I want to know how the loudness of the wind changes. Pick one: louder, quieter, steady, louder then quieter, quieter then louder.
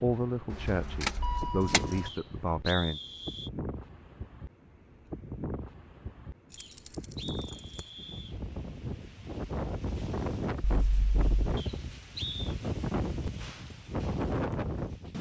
louder.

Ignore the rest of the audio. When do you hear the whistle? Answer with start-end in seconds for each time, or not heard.
2.0-3.5, 6.5-8.3, 11.6-12.5.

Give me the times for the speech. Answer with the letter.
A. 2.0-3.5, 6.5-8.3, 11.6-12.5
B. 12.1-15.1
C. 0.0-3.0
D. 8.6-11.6
C.